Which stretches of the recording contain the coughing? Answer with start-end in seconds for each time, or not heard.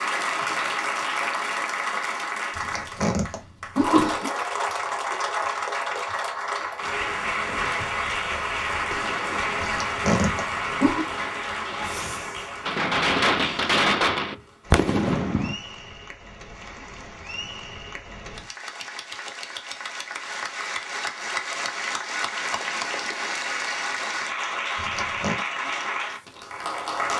2.5-4.3, 9.6-11.1, 24.8-25.4.